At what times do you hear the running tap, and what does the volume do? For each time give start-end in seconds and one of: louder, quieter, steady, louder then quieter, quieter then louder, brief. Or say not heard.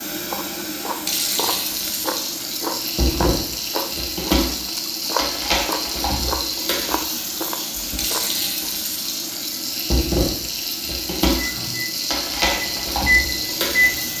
0.0-14.1 steady.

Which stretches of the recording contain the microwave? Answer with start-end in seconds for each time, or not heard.
11.3-14.1.